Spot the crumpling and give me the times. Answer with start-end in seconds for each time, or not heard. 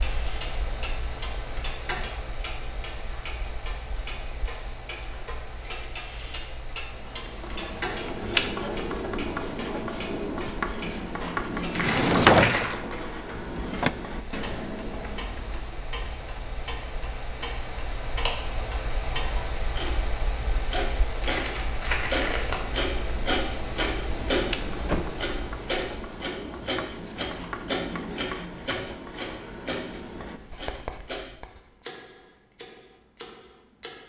11.7-12.7, 21.2-22.6.